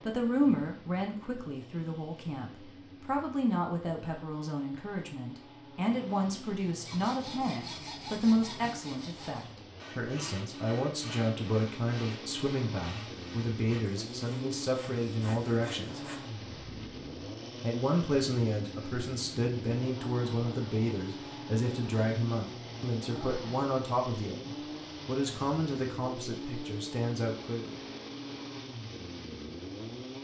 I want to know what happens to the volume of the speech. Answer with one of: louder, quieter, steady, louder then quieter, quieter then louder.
steady.